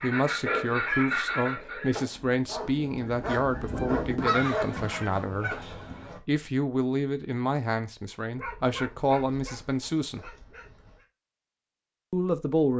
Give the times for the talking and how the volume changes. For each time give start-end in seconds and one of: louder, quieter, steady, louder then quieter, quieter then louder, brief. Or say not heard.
0.0-10.3 steady
12.1-12.7 brief.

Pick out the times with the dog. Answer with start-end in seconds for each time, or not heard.
1.9-4.7, 8.3-11.1.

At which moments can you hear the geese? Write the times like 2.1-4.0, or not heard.
0.0-6.2.